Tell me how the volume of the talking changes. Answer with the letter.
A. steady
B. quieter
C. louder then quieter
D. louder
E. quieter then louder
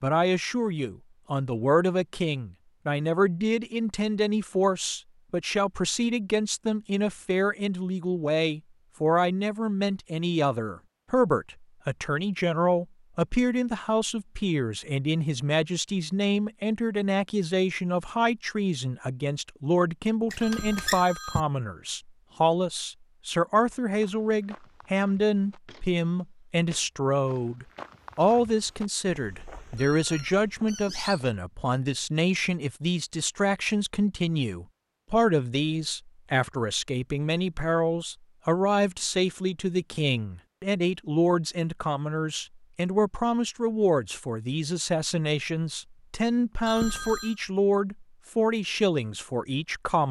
A.